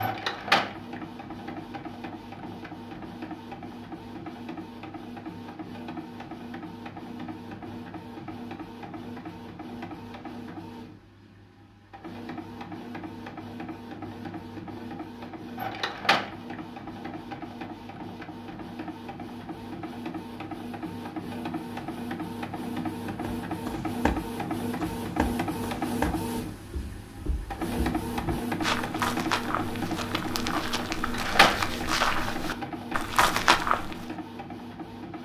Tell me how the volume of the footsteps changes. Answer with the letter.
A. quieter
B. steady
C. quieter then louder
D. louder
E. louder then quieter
D.